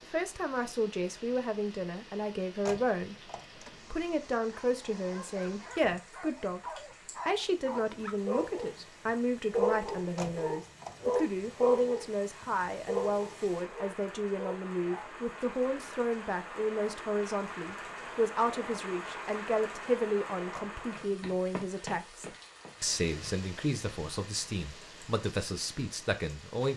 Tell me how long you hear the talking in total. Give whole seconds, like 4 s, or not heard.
27 s.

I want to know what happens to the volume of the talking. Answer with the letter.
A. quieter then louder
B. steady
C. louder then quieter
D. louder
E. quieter
B.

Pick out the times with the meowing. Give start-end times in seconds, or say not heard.
not heard.